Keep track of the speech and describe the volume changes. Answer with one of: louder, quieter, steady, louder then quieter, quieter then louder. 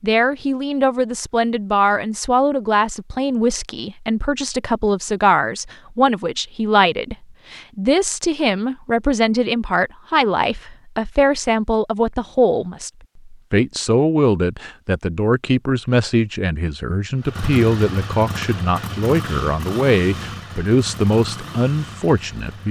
steady.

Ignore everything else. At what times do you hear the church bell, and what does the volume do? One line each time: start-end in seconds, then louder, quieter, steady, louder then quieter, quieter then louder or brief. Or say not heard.
not heard.